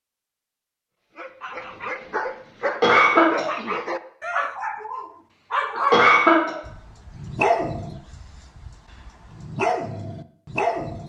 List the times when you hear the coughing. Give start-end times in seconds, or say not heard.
2.6-3.5, 5.8-6.5.